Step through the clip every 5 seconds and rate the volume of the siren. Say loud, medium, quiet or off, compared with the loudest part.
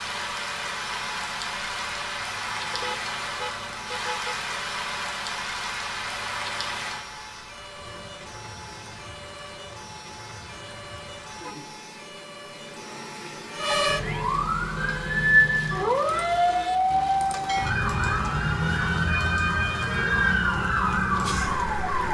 quiet, quiet, medium, loud, loud.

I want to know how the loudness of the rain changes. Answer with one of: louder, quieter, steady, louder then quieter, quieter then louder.
quieter.